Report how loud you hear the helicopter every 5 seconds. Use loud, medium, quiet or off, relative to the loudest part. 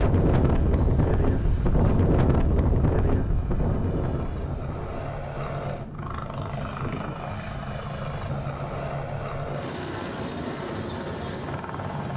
medium, loud, loud.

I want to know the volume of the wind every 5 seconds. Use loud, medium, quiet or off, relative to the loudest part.
loud, quiet, medium.